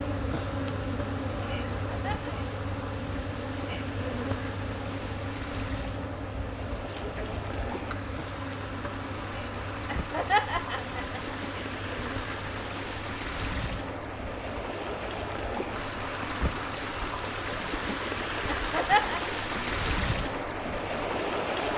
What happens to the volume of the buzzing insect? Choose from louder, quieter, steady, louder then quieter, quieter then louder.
quieter.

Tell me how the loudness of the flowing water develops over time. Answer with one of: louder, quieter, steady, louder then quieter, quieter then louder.
louder.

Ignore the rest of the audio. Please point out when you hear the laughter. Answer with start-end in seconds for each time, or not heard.
1.9-2.4, 9.8-11.3, 18.4-19.2.